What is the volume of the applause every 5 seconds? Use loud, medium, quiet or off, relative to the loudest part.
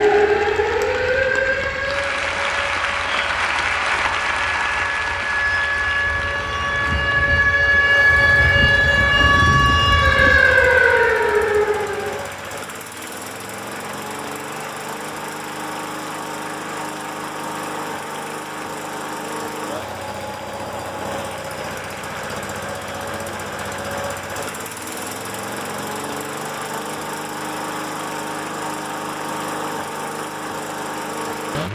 loud, medium, quiet, quiet, quiet, quiet, quiet.